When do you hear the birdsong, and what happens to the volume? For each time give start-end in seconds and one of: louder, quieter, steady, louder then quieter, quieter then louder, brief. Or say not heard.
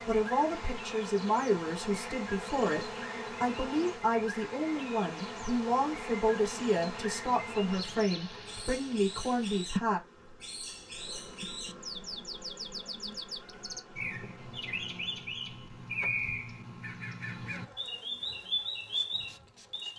0.0-19.9 louder.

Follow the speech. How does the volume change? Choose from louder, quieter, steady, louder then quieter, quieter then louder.
steady.